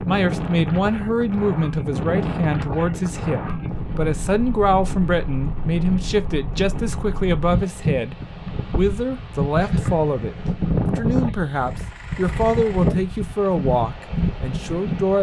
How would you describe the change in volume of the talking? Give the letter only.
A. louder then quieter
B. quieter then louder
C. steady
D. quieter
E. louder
C.